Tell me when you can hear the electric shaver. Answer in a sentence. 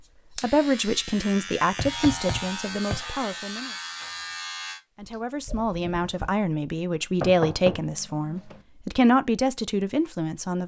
You can hear the electric shaver from 0.0 to 4.8 s.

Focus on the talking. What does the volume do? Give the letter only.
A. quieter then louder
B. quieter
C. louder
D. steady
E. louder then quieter
A.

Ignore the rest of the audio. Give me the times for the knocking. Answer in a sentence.
You can hear the knocking from 1.8 to 3.0 s and from 7.2 to 8.6 s.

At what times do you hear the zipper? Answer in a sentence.
You can't hear the zipper here.